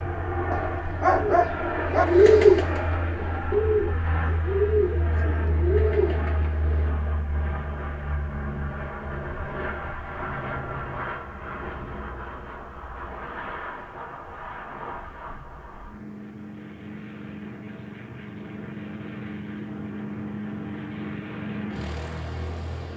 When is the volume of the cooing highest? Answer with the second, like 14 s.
2 s.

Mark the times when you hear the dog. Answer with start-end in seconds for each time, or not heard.
0.5-2.0.